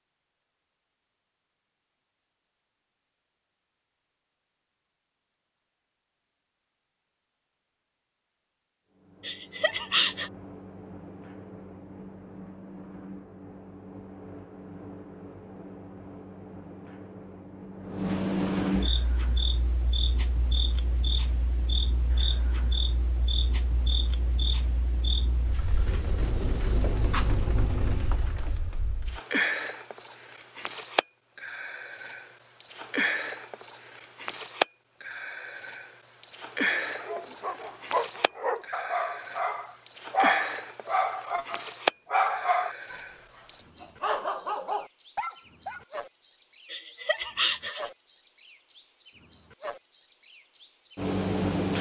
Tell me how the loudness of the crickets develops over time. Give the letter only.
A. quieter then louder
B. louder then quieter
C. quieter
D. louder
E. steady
D.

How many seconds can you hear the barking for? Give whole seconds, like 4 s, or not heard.
8 s.